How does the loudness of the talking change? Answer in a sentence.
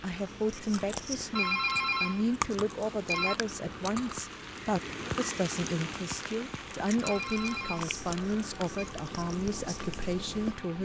The loudness of the talking stays about the same.